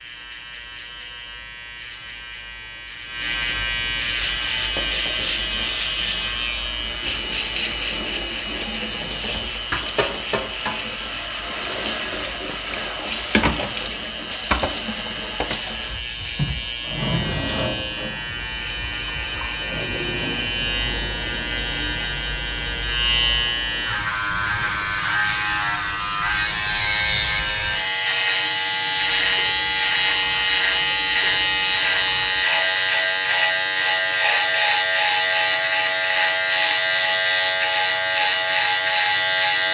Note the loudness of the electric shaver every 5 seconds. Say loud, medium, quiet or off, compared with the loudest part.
medium, medium, quiet, medium, medium, loud, loud, loud.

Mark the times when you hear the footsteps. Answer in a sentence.
You can't hear the footsteps here.